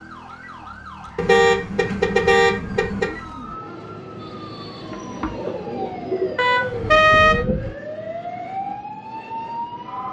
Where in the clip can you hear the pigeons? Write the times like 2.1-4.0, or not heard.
4.8-7.8.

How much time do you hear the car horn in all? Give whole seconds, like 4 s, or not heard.
3 s.